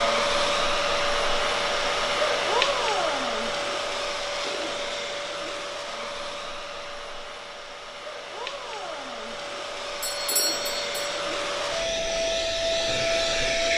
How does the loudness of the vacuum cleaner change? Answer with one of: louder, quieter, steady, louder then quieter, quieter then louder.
quieter then louder.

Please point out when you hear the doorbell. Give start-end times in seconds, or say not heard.
10.0-11.2.